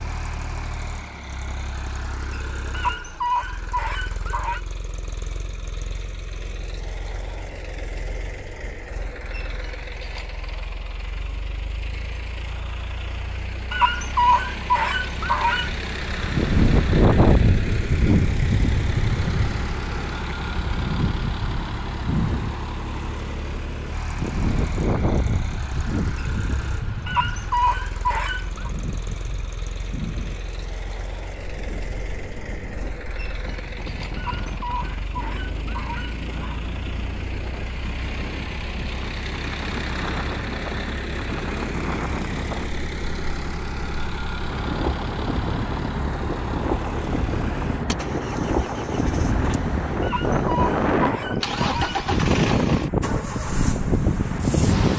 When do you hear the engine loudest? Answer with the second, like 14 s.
52 s.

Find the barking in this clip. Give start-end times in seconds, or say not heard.
2.8-4.6, 13.7-15.7, 27.1-28.7, 34.1-36.5, 50.0-52.0.